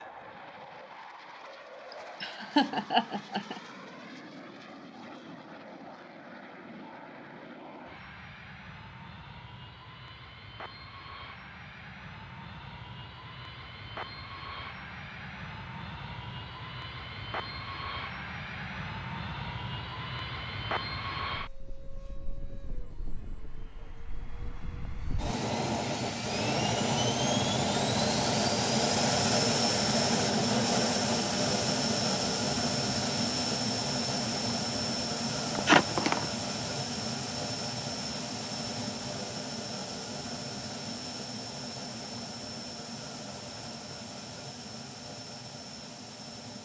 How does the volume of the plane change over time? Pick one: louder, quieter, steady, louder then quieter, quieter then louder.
louder then quieter.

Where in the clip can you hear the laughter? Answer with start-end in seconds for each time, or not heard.
1.9-3.6, 35.5-36.2.